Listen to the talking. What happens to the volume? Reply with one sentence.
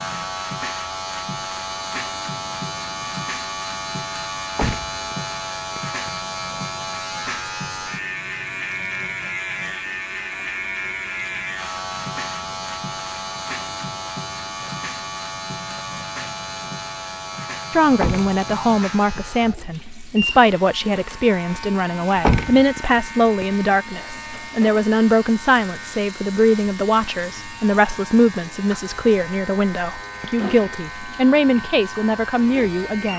The loudness of the talking stays about the same.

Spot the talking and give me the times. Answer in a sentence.
You can hear the talking from 17.7 to 33.1 s.